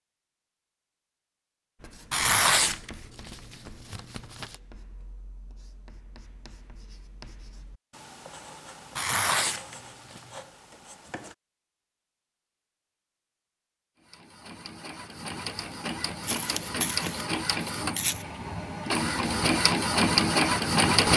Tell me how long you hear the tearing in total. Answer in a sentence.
You can hear the tearing for 6 seconds altogether.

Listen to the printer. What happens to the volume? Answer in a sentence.
The loudness of the printer goes up.